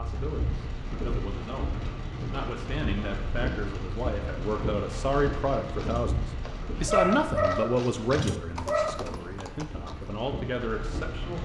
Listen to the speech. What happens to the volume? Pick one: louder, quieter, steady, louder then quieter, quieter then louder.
louder then quieter.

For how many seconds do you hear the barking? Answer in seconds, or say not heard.
2 s.